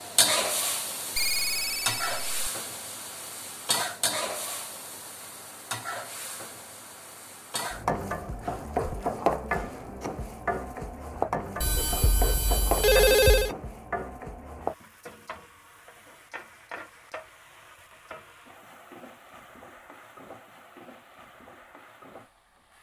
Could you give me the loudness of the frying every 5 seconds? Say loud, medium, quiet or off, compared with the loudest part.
loud, loud, loud, quiet, quiet.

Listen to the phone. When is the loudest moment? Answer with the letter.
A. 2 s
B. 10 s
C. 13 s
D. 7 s
C.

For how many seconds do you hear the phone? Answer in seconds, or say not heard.
3 s.